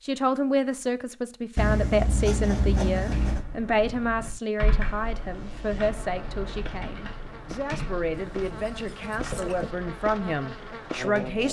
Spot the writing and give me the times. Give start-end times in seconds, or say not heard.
1.6-3.5, 8.2-9.7.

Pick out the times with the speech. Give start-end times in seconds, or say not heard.
0.0-11.4.